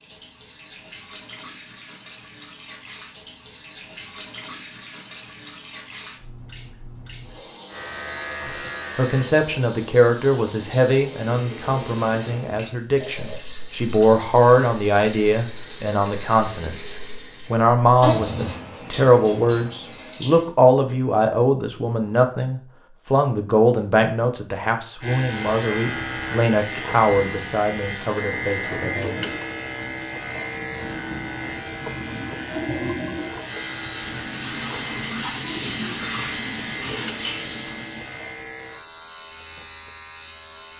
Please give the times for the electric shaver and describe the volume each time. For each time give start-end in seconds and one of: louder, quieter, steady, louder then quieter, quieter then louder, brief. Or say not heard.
7.7-9.3 brief
25.0-40.7 quieter.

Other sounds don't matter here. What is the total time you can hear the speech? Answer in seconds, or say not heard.
21 s.